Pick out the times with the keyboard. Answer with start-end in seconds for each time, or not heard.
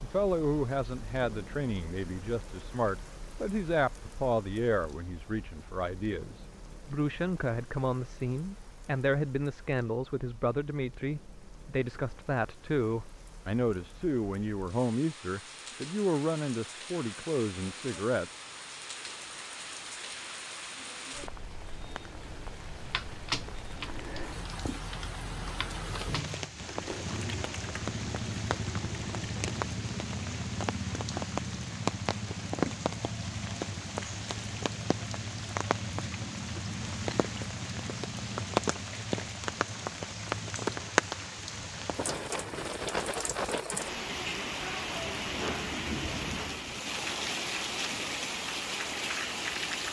22.9-29.5.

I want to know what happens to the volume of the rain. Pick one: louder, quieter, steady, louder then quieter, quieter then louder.
louder.